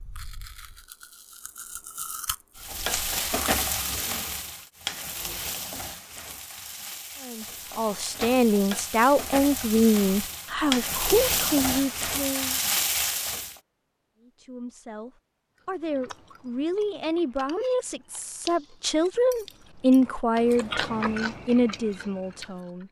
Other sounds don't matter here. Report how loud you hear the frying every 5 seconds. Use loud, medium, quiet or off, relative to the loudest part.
loud, medium, loud, off, off.